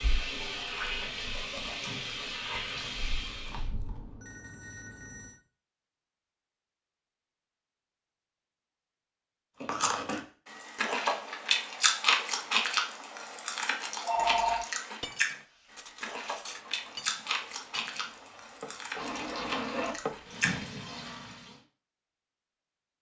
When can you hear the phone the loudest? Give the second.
14 s.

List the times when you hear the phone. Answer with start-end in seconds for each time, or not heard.
3.5-5.4, 14.0-14.7.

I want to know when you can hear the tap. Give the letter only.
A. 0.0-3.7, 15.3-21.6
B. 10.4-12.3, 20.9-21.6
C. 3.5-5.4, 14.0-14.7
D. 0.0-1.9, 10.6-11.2
A.